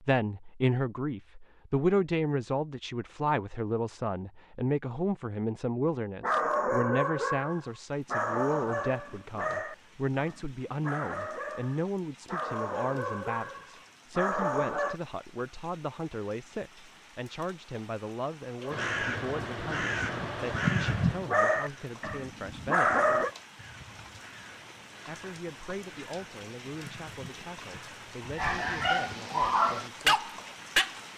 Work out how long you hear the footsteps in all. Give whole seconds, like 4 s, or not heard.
not heard.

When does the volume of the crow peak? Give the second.
21 s.